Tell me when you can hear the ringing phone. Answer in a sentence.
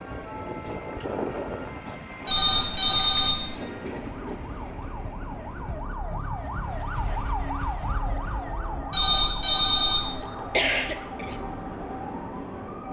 You can hear the ringing phone from 2.2 to 3.8 s and from 8.9 to 10.4 s.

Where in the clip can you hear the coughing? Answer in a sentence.
You can hear the coughing from 10.0 to 11.4 s.